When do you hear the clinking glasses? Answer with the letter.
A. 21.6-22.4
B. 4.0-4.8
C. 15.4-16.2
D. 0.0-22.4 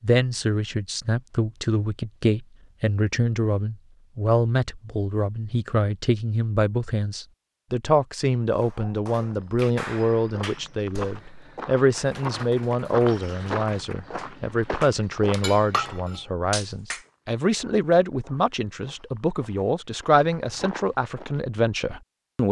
C.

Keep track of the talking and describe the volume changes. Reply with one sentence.
The loudness of the talking stays about the same.